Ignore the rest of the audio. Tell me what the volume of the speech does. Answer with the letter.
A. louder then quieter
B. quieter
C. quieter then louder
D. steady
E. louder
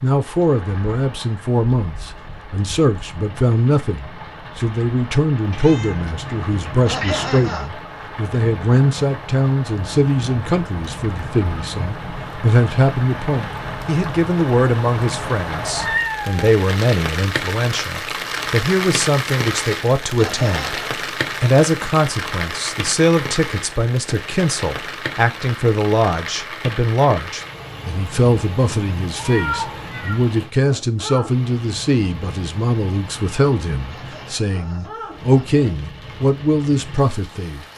D.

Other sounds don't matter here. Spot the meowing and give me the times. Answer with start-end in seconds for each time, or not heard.
5.5-7.5, 15.6-16.6, 29.1-30.2.